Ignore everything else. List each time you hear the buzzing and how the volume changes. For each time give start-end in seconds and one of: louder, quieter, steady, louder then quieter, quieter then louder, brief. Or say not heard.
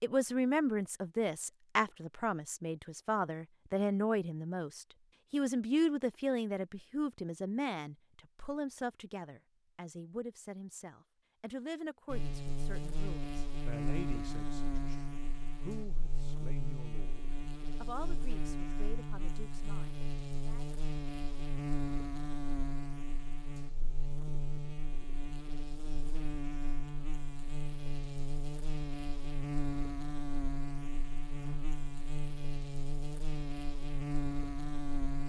12.1-35.2 steady.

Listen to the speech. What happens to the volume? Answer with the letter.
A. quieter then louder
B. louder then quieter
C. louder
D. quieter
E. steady
D.